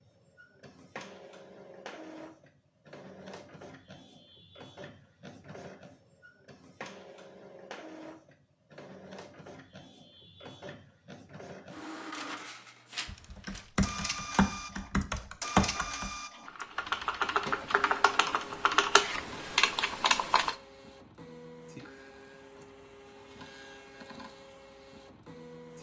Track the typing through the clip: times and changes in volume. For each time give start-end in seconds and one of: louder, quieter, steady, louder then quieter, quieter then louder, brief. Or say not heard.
13.1-20.6 steady.